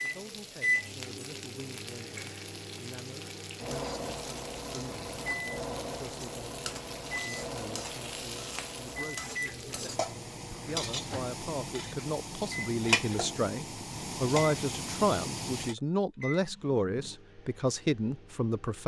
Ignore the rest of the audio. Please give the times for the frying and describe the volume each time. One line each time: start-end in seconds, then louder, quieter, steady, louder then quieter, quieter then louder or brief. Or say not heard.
0.0-15.8 louder.